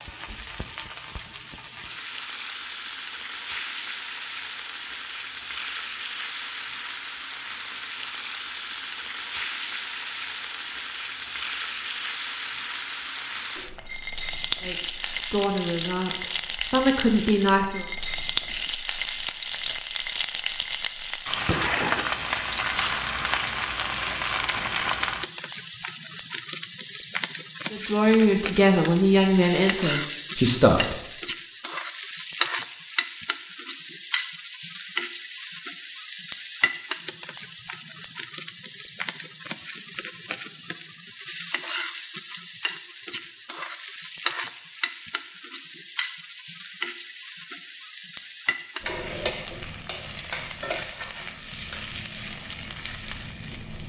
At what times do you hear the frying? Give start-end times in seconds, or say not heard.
0.0-53.8.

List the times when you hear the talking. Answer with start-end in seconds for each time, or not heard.
14.7-17.9, 27.7-31.0.